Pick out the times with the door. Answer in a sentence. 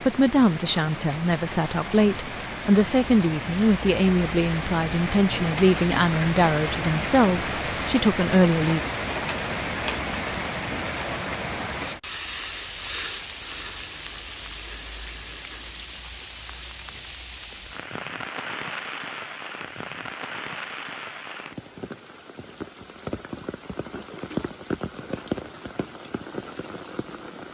The door can't be heard in this clip.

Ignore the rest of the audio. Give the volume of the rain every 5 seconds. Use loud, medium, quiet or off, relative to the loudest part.
medium, loud, loud, medium, medium, medium.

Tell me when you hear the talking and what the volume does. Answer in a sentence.
You can hear the talking from 0.1 to 8.8 s, at a steady volume.